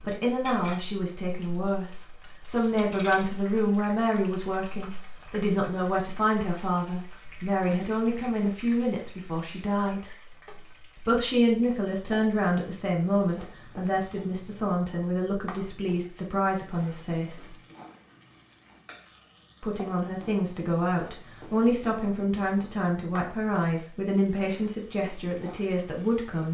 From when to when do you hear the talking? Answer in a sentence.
The talking can be heard from 0.0 to 10.1 s, from 10.9 to 17.6 s and from 19.6 to 26.4 s.